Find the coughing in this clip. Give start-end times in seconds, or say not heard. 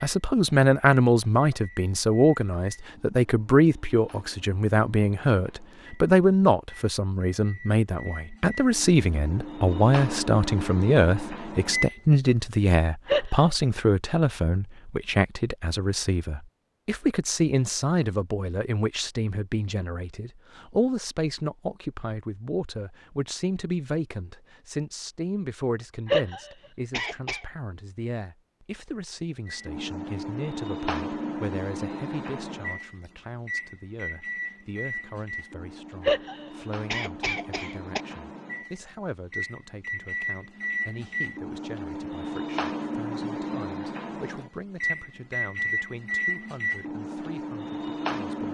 13.1-13.5, 26.1-27.4, 36.0-38.0.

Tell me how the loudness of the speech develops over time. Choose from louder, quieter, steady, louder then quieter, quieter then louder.
quieter.